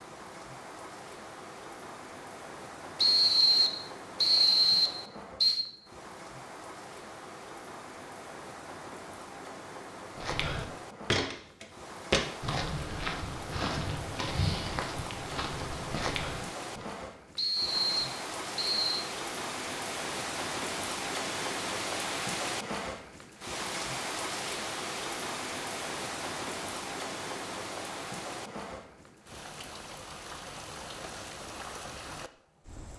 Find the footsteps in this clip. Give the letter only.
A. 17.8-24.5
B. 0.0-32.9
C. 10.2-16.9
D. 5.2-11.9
C.